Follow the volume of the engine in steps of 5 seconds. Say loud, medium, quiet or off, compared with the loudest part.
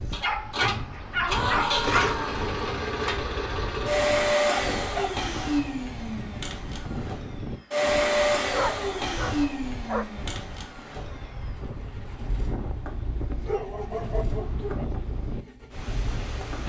loud, loud, quiet, quiet.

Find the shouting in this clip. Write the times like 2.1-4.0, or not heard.
1.2-2.5.